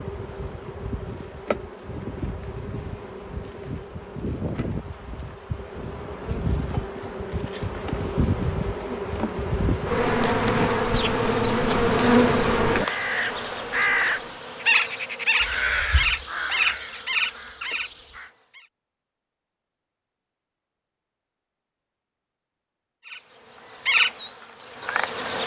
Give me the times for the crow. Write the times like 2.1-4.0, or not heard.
12.8-18.3.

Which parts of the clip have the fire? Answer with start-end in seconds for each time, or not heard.
not heard.